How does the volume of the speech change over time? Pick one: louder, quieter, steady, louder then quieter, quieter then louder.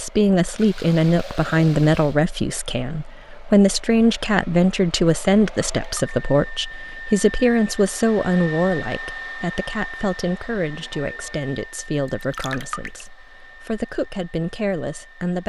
quieter.